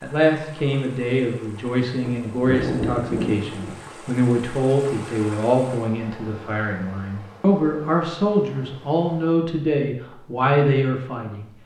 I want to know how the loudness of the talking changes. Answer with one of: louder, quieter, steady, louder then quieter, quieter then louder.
steady.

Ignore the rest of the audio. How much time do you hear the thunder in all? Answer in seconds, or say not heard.
2 s.